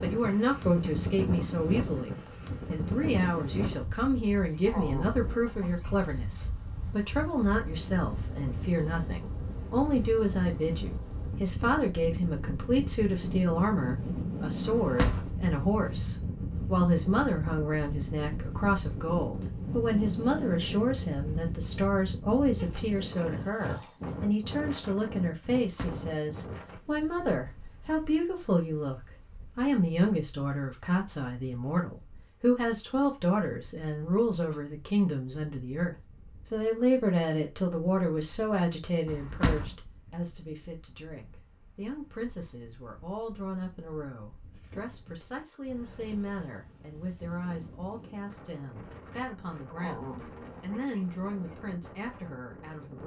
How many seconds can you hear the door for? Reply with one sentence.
You can hear the door for 2 seconds altogether.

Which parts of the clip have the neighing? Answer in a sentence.
You can't hear the neighing here.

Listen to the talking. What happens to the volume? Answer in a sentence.
The volume of the talking goes down.